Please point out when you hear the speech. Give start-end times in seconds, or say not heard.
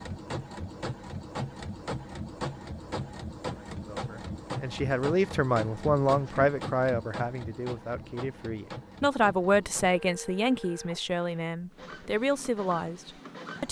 3.8-13.6.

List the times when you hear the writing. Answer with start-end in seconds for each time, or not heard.
not heard.